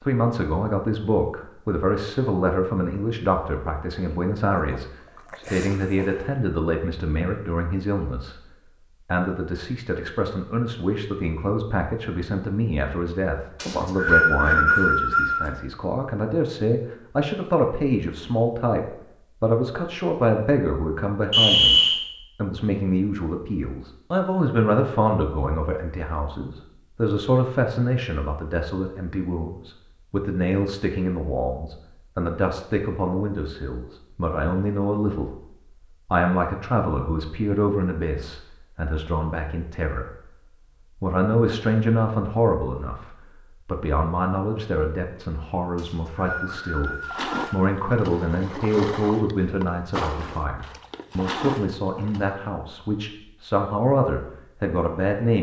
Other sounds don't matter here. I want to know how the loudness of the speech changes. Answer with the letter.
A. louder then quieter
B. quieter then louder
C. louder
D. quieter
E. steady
E.